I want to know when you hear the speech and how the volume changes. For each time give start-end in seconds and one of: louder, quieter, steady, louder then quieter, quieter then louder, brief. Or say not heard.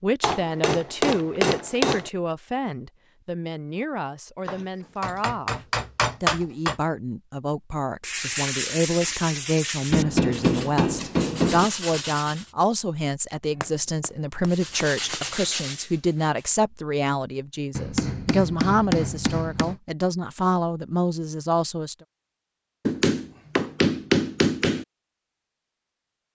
0.0-5.5 quieter
6.2-21.9 steady.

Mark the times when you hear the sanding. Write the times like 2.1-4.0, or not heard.
8.0-12.5, 14.4-16.6.